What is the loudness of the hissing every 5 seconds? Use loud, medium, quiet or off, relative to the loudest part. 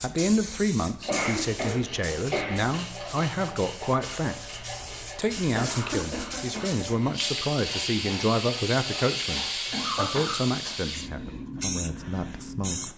medium, loud, loud.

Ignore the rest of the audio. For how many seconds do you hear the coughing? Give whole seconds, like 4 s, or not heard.
4 s.